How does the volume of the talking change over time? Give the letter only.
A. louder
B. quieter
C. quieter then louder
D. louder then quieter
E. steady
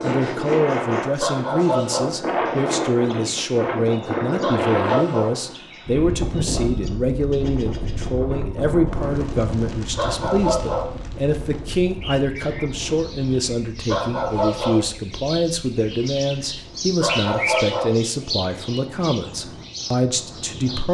E.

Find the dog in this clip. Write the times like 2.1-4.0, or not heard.
1.2-2.1, 4.4-5.3, 9.9-10.9, 13.8-14.8, 17.0-17.9.